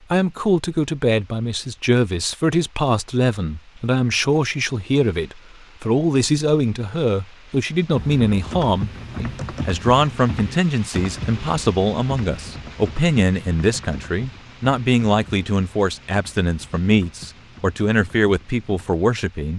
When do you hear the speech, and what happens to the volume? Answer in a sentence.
The speech can be heard from 0.1 to 19.5 s, at a steady volume.